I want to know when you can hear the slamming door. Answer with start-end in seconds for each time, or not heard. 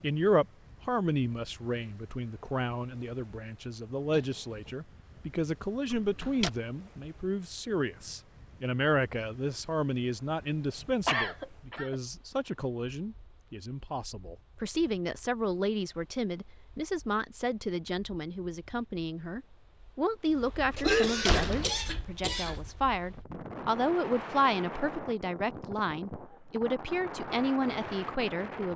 5.9-6.5, 20.7-21.8.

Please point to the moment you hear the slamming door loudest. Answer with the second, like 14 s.
21 s.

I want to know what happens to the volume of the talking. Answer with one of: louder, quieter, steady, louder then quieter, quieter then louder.
steady.